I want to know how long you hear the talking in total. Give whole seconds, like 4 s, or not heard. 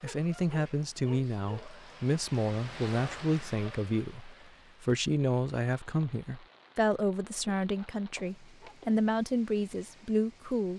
11 s.